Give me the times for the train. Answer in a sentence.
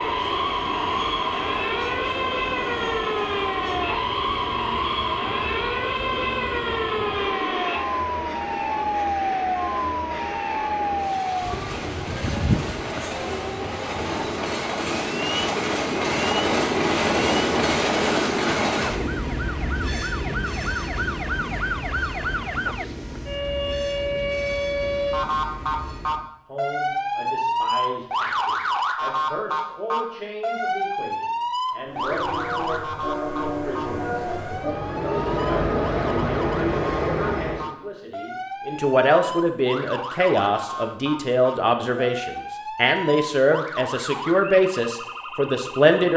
You can hear the train from 0.0 to 26.2 s and from 31.9 to 37.7 s.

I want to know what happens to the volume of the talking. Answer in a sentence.
The loudness of the talking goes up.